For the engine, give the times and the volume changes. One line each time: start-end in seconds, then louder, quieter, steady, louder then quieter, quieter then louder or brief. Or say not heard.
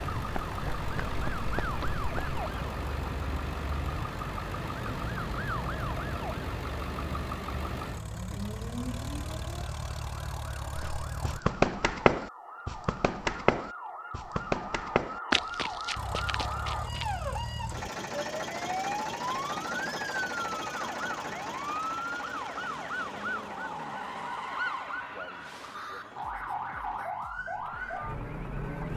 0.0-11.4 steady
15.9-28.9 quieter.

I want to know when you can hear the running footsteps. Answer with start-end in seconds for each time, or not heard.
0.1-2.4, 10.8-17.1.